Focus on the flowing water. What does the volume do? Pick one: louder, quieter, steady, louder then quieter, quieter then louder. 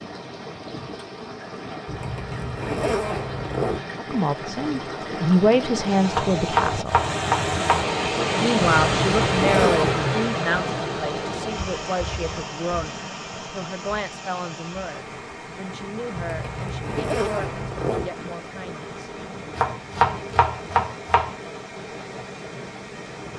louder then quieter.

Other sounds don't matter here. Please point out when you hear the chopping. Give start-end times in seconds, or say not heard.
6.1-7.9, 19.6-21.4.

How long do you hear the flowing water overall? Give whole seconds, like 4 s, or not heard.
23 s.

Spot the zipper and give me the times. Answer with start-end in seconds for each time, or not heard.
1.9-3.9, 8.8-10.2, 16.1-18.1.